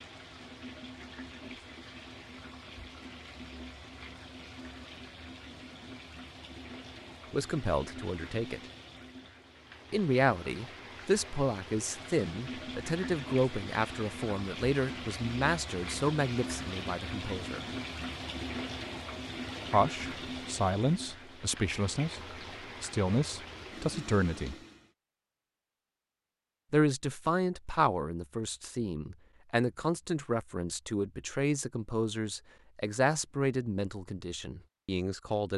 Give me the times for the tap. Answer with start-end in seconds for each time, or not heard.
0.0-24.9.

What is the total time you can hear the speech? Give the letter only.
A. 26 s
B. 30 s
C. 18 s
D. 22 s
D.